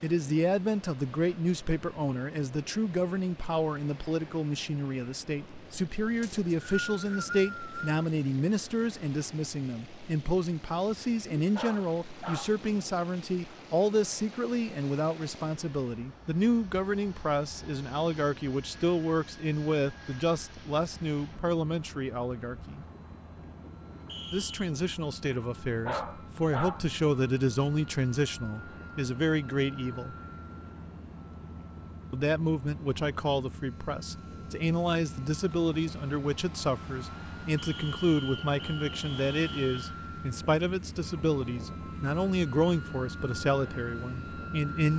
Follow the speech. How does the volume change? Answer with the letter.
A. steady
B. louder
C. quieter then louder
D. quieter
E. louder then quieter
A.